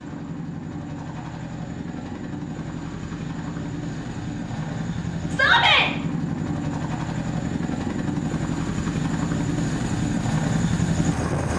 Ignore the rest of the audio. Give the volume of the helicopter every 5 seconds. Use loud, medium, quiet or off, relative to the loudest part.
medium, loud, loud.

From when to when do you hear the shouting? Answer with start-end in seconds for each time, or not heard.
5.3-5.9.